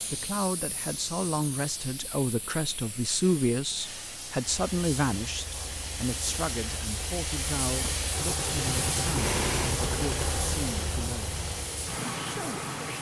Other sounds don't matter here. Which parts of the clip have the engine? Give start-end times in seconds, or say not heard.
4.4-12.9.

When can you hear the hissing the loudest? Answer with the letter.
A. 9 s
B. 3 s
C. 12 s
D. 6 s
A.